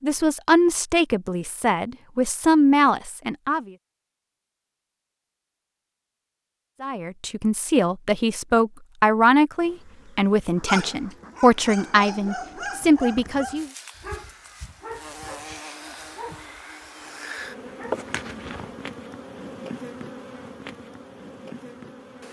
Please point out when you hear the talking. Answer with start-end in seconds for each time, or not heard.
0.0-3.7, 6.8-13.7.